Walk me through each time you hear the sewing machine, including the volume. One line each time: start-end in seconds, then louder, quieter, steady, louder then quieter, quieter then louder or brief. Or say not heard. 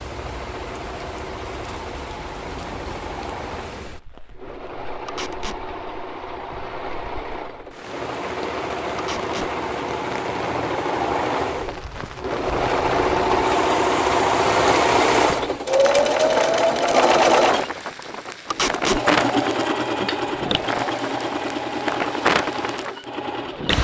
0.0-23.7 louder then quieter.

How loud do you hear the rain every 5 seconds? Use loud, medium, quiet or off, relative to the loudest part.
quiet, medium, medium, loud, loud.